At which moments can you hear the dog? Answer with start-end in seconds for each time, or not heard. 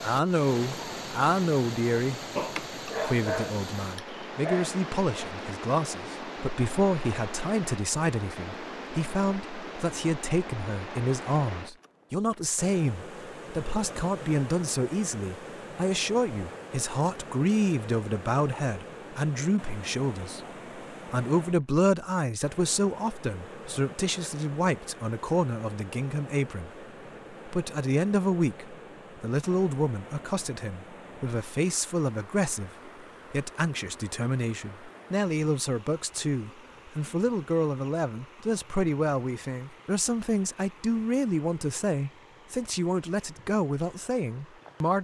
2.4-5.3.